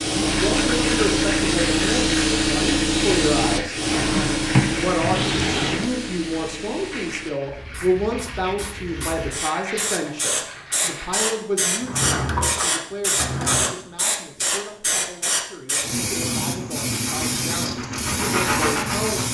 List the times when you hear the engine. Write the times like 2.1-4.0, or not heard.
16.6-19.2.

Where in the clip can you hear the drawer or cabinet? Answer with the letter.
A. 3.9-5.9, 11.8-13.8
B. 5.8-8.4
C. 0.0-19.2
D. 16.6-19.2
A.